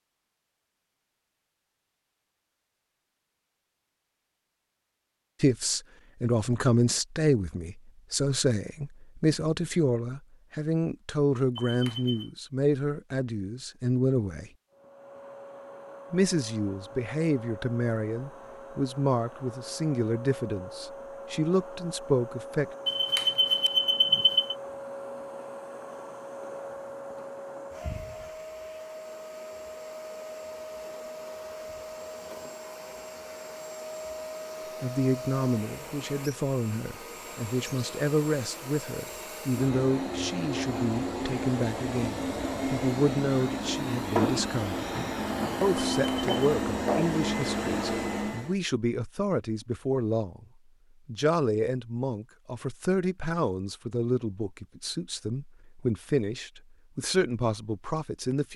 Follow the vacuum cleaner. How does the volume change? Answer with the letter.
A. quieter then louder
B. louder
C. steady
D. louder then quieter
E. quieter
B.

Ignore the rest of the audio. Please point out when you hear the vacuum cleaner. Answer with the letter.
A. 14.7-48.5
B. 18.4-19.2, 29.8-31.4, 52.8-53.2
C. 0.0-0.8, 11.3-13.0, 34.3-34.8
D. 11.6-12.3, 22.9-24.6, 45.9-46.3
A.